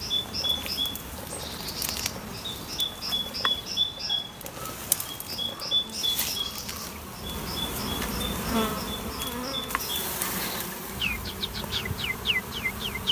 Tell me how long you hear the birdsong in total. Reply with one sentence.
You can hear the birdsong for 13 seconds altogether.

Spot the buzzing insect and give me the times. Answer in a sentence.
You can hear the buzzing insect from 0.0 to 13.0 s.